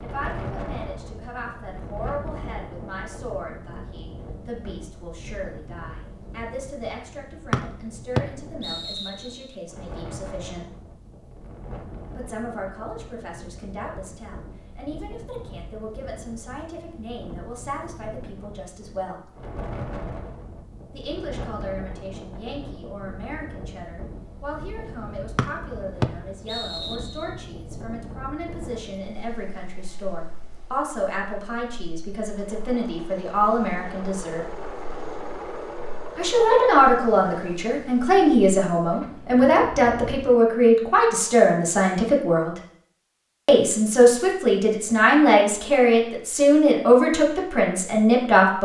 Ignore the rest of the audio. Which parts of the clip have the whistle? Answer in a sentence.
You can hear the whistle from 7.5 to 9.4 s and from 25.4 to 27.2 s.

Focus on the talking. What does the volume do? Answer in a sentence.
The loudness of the talking goes up.